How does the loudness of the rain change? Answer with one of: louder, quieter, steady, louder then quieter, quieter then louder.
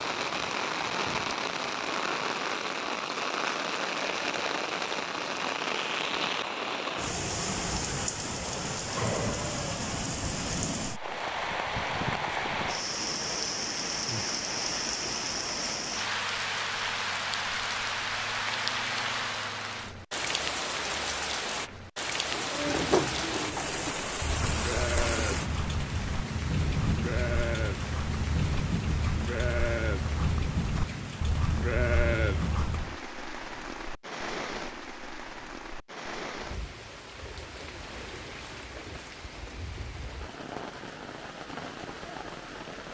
quieter.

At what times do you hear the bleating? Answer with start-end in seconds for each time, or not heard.
22.3-33.0.